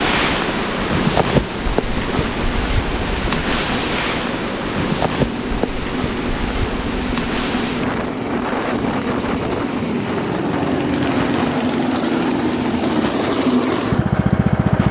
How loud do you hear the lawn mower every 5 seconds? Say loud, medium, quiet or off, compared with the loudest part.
medium, medium, loud.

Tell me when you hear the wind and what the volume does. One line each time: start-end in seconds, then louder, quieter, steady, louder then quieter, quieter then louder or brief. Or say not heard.
0.0-14.8 quieter.